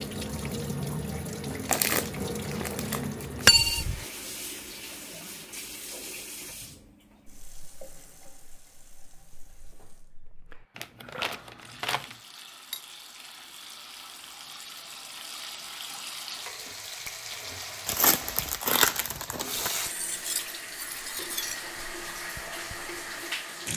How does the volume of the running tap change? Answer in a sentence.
The loudness of the running tap goes down, then up.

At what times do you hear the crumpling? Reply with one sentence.
You can hear the crumpling from 1.6 to 3.2 s, from 10.8 to 12.2 s and from 17.9 to 19.8 s.